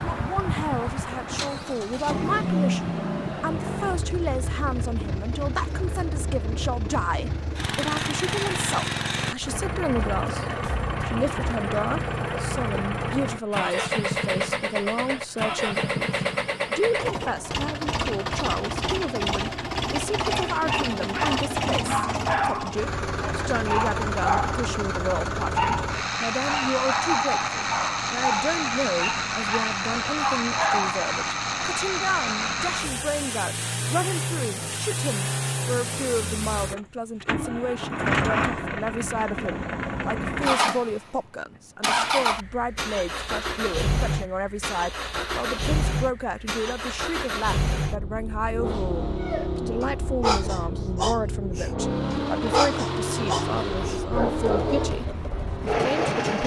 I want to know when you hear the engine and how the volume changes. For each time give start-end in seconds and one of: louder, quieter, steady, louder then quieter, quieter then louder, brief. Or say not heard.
0.0-56.4 steady.